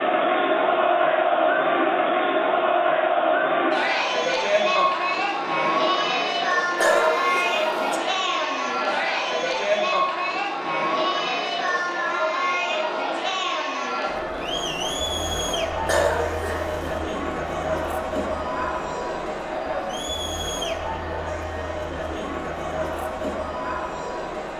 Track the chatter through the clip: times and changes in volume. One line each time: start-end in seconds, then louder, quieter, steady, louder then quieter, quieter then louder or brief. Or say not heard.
0.0-24.5 quieter.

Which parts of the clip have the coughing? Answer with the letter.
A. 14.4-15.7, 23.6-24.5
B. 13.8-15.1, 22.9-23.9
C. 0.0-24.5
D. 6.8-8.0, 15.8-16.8
D.